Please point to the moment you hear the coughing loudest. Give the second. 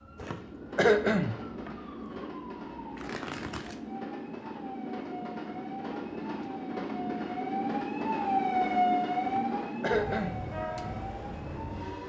1 s.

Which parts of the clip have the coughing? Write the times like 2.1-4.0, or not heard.
0.2-1.4, 9.2-10.4.